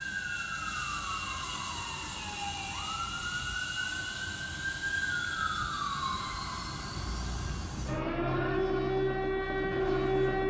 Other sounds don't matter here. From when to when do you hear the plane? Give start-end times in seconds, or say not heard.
0.0-10.4.